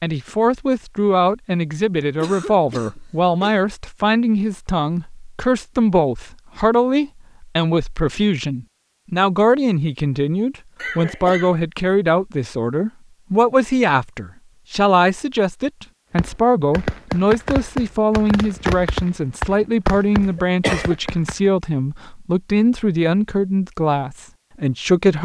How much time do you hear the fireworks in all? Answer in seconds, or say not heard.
5 s.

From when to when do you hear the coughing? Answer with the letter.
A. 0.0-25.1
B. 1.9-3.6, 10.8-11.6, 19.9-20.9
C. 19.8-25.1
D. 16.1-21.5
B.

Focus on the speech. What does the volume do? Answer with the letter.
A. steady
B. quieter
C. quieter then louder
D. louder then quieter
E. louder
A.